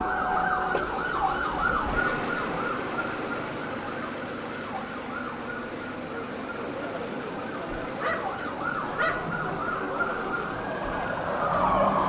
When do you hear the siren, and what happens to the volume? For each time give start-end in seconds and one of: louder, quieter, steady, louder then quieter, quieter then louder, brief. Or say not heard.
0.0-12.0 quieter then louder.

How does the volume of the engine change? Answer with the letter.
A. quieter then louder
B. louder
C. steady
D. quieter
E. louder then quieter
D.